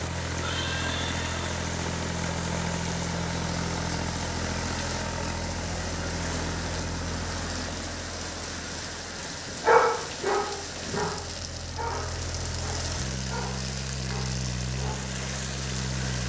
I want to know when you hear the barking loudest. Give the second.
10 s.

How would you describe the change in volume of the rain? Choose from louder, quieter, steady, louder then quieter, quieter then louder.
steady.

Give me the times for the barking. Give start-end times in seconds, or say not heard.
9.6-15.1.